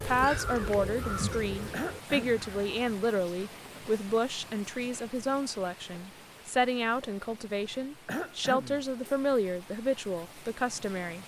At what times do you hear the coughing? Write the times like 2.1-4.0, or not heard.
1.7-2.5, 8.1-8.8.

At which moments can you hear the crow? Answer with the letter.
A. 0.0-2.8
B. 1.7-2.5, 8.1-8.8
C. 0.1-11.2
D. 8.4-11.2
A.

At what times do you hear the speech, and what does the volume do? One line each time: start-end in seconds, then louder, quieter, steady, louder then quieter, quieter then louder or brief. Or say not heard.
0.1-11.2 steady.